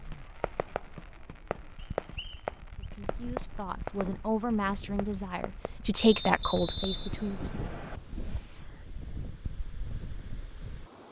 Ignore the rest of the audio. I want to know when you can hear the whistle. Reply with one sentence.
You can hear the whistle from 1.8 to 2.9 s and from 6.0 to 8.0 s.